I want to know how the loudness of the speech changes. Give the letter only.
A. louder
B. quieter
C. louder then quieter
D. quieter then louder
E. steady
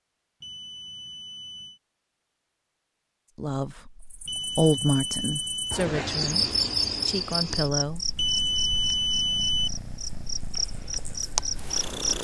C.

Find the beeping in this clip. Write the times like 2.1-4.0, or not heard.
0.4-1.8, 4.2-5.8, 8.2-9.7.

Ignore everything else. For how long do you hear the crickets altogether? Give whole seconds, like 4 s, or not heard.
8 s.